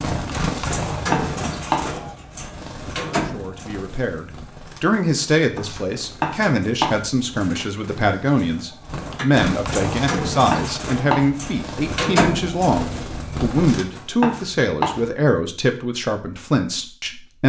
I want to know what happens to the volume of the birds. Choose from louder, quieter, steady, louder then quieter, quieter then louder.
quieter then louder.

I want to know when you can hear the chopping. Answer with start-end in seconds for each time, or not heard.
0.4-2.0, 5.5-7.1, 9.8-11.4, 13.5-15.1.